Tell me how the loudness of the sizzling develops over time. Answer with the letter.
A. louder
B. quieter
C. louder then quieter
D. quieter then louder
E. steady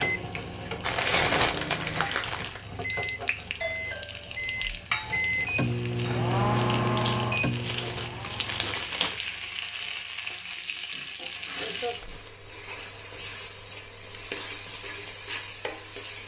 E.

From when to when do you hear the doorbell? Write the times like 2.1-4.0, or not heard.
3.6-4.8.